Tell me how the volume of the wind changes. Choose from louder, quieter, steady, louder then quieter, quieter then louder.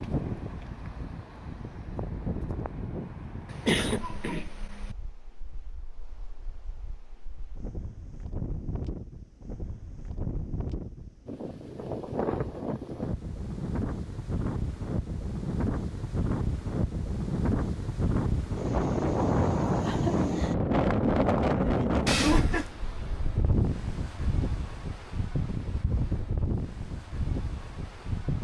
louder then quieter.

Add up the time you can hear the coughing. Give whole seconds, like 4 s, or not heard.
2 s.